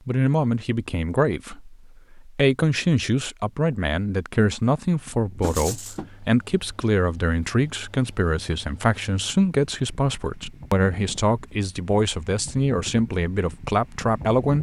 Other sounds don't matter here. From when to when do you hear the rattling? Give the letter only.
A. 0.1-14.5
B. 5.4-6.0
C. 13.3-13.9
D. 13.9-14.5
B.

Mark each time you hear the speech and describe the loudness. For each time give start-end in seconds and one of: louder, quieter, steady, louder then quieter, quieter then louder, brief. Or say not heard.
0.1-14.5 steady.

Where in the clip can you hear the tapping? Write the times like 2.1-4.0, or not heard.
5.4-6.1.